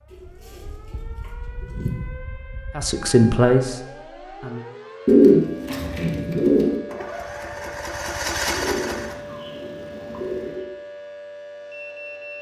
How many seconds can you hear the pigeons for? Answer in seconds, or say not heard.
6 s.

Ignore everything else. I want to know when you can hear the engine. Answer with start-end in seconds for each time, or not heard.
6.8-9.2.